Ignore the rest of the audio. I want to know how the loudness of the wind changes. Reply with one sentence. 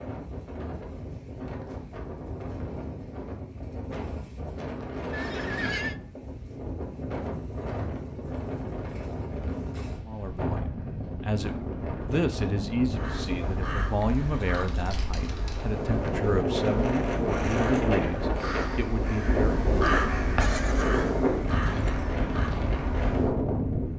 The volume of the wind goes up.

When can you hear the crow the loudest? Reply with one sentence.
The volume of the crow peaks at 20 seconds.